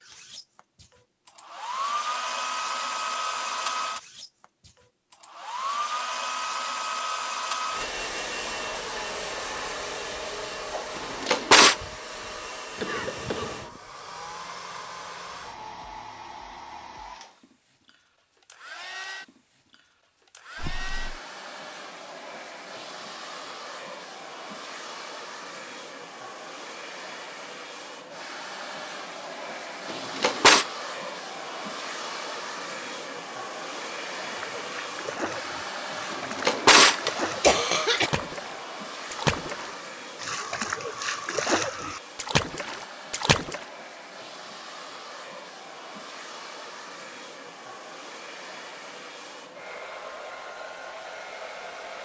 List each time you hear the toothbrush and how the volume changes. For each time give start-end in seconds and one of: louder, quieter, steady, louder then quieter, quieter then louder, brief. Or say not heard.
not heard.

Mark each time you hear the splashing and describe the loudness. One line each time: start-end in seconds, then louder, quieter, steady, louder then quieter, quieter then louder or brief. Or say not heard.
34.2-43.6 louder.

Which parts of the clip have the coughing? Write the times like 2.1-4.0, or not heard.
12.8-13.8, 20.6-21.2, 37.4-38.1.